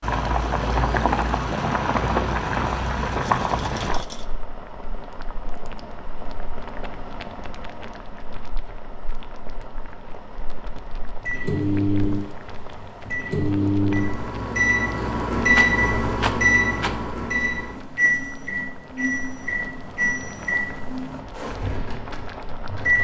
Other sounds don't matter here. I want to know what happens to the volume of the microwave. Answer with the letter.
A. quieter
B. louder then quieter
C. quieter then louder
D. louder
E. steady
A.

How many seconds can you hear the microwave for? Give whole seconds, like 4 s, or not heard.
12 s.